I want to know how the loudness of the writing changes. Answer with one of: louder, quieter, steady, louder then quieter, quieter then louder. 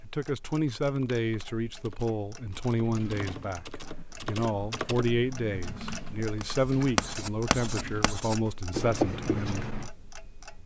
louder.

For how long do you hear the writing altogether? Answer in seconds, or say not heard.
6 s.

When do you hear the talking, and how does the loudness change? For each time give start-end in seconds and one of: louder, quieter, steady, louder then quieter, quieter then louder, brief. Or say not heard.
0.0-9.8 steady.